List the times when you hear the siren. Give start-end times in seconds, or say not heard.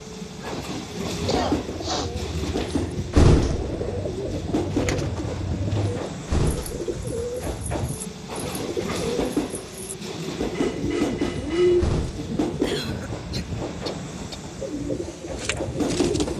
not heard.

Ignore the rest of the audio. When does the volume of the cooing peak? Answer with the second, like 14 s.
12 s.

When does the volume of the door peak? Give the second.
3 s.